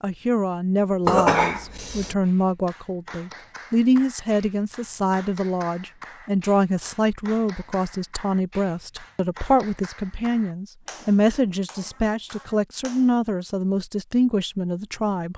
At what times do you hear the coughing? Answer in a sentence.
You can hear the coughing from 1.1 to 2.1 s.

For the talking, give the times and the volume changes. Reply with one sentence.
You can hear the talking from 0.0 to 15.3 s, at a steady volume.